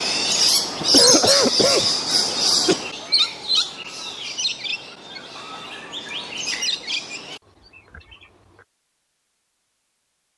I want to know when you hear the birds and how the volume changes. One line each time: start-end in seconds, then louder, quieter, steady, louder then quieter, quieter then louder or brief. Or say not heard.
0.0-8.7 quieter.